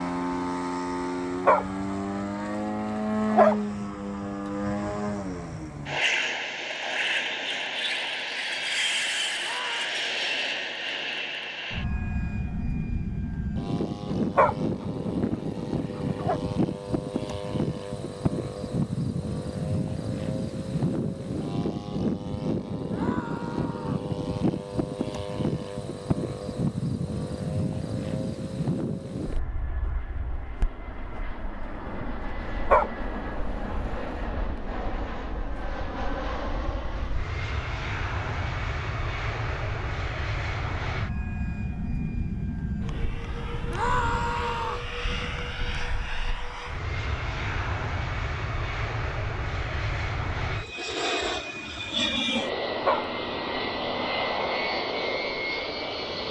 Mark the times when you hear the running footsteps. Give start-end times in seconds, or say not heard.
not heard.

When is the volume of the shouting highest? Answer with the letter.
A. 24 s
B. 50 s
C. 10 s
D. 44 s
D.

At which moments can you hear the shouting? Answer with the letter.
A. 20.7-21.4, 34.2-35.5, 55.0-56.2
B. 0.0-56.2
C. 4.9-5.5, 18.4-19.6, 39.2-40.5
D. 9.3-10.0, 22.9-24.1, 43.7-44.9
D.